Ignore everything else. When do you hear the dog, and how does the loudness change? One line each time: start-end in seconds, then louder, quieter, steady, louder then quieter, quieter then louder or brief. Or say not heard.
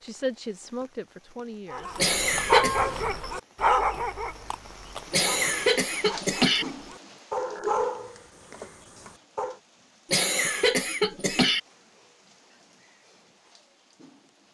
1.7-9.6 quieter then louder.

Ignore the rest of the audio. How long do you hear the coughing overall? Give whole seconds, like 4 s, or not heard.
4 s.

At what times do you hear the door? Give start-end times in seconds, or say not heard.
not heard.